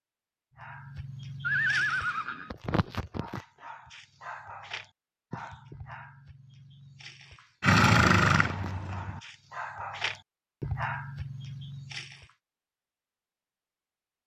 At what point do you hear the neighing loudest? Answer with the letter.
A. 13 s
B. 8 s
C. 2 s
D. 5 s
B.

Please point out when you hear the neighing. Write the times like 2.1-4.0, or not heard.
1.4-2.5, 7.6-9.1.